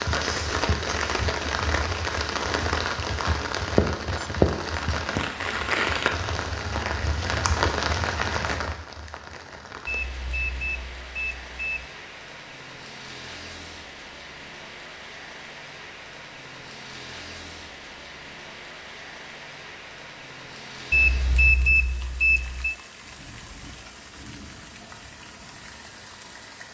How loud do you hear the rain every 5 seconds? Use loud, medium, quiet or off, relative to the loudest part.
loud, loud, quiet, quiet, quiet, quiet.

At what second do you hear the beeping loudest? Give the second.
22 s.